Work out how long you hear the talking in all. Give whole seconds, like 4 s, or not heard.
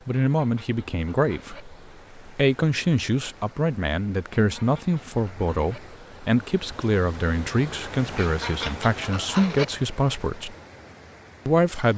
11 s.